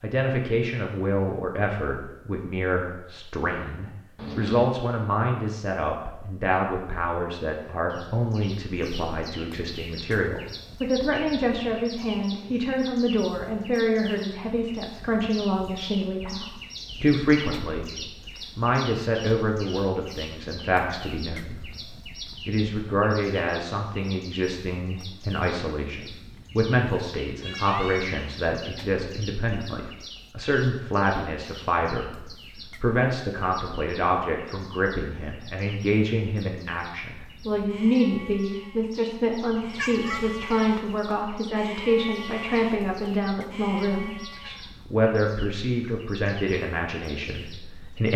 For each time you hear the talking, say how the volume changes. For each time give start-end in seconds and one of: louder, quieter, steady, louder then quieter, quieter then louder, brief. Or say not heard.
0.0-48.1 steady.